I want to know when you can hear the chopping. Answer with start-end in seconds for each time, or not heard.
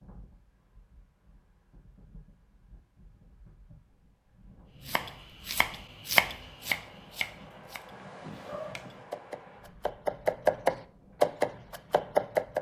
4.8-12.5.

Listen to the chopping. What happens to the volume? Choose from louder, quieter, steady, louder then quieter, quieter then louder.
quieter then louder.